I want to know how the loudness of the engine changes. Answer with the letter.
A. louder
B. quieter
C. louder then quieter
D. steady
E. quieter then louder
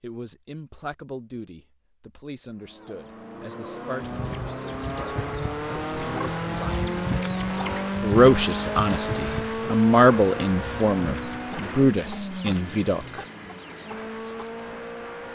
C.